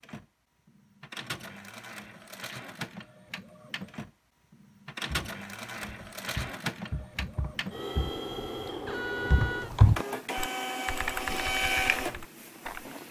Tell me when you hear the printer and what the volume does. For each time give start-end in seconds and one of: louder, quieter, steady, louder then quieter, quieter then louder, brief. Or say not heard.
0.0-13.0 louder.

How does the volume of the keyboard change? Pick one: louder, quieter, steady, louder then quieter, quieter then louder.
louder then quieter.